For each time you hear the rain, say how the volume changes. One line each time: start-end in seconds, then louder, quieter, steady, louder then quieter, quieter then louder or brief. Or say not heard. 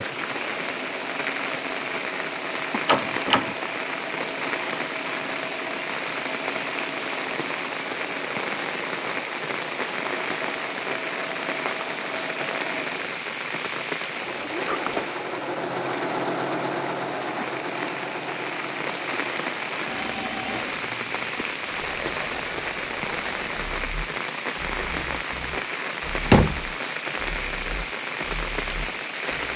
0.0-29.5 steady.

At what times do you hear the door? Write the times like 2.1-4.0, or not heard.
2.9-3.5, 14.2-15.1, 26.2-26.6.